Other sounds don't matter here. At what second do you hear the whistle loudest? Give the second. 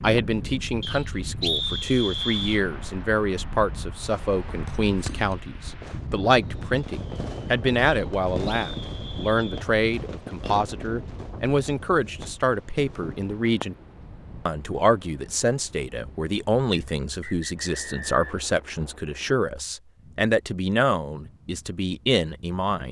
2 s.